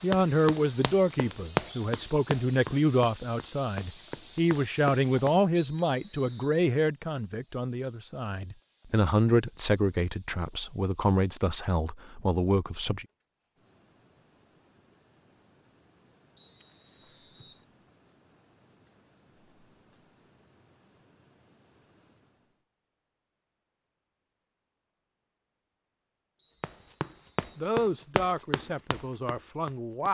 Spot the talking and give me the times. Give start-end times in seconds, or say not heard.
0.0-13.1, 27.6-30.0.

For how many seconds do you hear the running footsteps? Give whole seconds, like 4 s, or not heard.
9 s.